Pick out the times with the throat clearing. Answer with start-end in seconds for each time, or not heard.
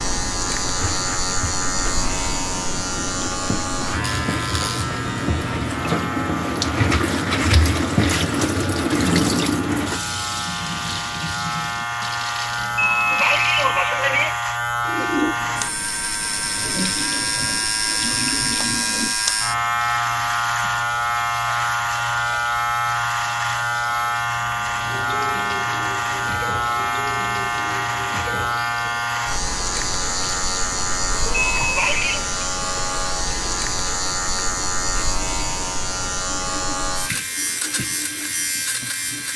12.8-14.3, 31.6-32.2.